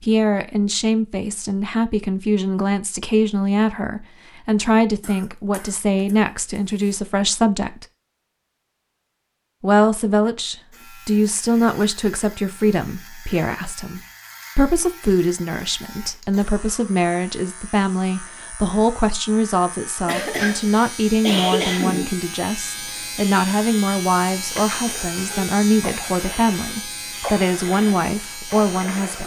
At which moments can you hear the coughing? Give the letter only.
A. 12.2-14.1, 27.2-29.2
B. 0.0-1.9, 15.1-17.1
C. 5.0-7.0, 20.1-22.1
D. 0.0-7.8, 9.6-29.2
C.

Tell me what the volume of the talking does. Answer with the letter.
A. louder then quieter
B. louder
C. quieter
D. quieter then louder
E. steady
E.